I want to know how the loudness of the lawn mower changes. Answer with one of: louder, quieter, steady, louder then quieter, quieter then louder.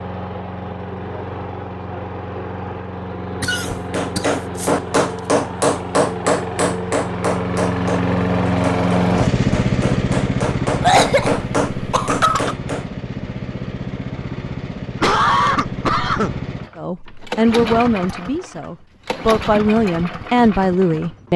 louder then quieter.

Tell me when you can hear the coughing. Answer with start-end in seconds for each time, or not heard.
3.4-4.8, 10.8-12.6, 15.0-16.4.